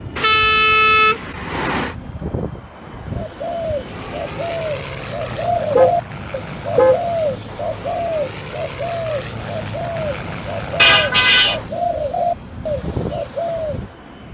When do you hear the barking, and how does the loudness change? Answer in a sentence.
You can't hear the barking here.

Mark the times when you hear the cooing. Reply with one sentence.
The cooing can be heard from 3.1 to 13.8 s.